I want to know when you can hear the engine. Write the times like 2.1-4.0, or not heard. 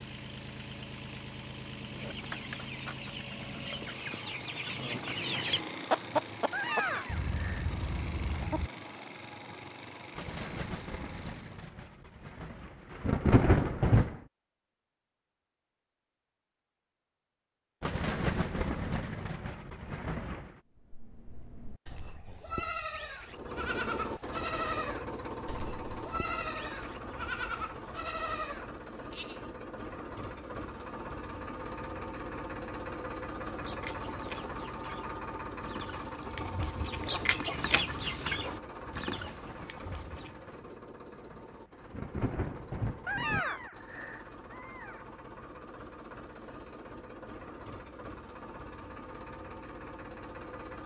0.0-11.7, 23.2-50.8.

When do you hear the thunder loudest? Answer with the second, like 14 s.
13 s.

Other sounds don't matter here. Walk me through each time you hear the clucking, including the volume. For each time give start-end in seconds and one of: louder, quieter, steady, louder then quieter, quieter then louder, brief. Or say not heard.
1.9-8.7 louder then quieter
33.6-40.4 louder then quieter.